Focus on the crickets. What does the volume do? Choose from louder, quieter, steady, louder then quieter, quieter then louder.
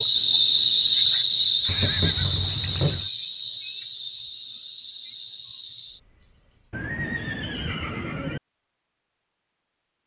quieter.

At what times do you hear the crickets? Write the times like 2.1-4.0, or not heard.
0.0-6.8.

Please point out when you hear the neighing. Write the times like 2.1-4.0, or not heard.
1.6-3.1, 6.7-8.4.